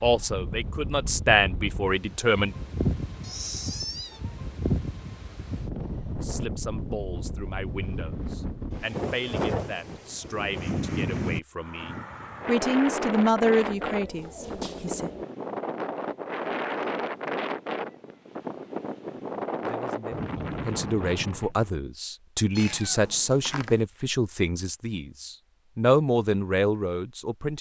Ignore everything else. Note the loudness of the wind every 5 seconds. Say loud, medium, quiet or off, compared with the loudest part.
loud, loud, loud, loud, loud, off.